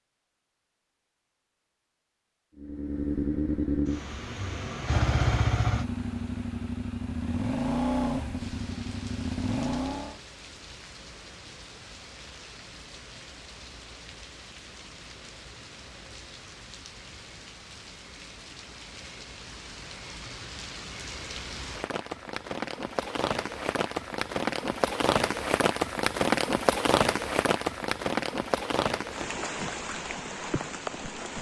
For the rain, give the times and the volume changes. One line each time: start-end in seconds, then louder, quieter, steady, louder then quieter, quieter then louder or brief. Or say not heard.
8.3-31.3 louder.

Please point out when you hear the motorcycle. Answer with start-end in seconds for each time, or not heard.
2.5-10.2.